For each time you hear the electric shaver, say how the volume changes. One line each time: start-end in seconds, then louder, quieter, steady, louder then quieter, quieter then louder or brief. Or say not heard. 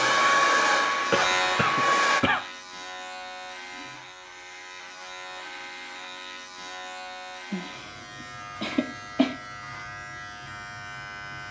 0.0-11.4 quieter.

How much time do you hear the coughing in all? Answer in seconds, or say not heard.
3 s.